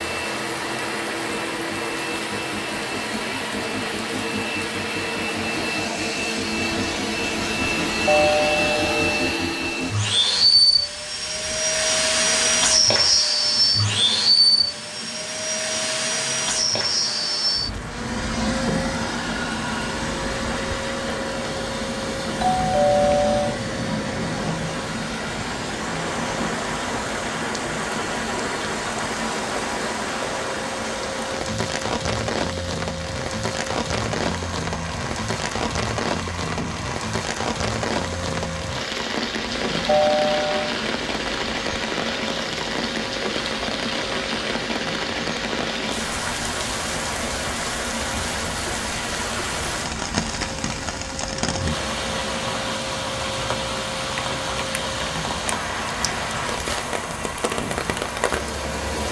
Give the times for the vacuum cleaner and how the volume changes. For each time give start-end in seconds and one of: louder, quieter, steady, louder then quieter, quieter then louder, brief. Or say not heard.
0.0-59.0 quieter.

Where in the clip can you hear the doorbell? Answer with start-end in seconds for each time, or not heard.
8.1-9.2, 22.4-23.6, 39.9-40.8.